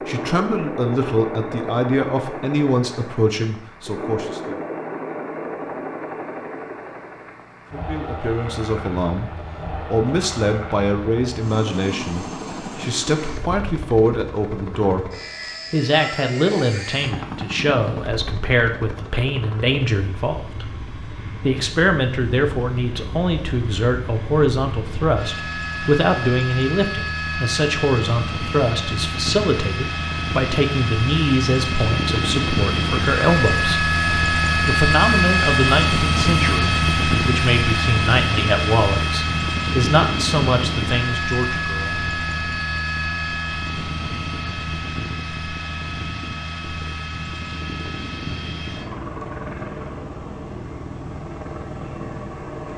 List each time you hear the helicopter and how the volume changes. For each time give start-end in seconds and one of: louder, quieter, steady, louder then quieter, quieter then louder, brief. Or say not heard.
0.0-52.7 louder then quieter.